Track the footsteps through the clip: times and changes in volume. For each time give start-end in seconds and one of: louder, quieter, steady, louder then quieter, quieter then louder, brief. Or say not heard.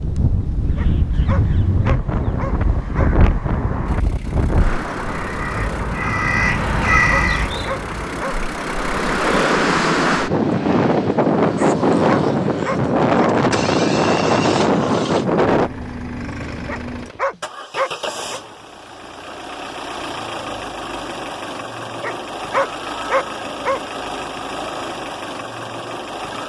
not heard.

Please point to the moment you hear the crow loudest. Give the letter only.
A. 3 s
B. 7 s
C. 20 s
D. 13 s
B.